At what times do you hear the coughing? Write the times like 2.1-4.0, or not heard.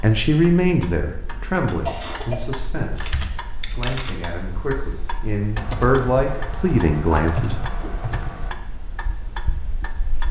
1.3-2.4, 7.1-8.0.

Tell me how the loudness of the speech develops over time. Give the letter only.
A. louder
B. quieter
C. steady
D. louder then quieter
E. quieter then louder
E.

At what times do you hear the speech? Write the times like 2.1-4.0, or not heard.
0.0-7.5.